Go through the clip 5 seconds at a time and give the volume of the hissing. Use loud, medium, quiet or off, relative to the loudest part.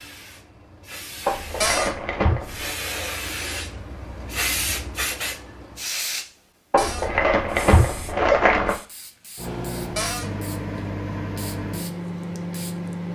loud, loud, quiet.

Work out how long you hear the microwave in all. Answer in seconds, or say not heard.
4 s.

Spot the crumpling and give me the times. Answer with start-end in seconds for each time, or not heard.
1.2-2.8, 6.7-8.8.